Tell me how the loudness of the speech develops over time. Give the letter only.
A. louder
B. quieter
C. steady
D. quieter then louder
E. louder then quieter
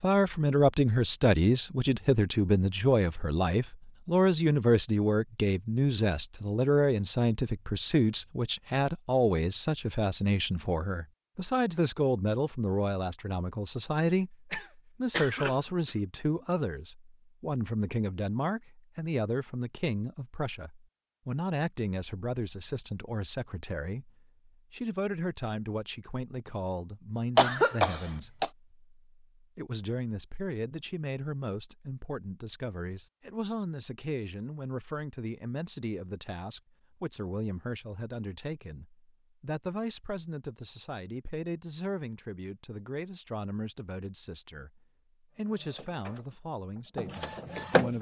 B.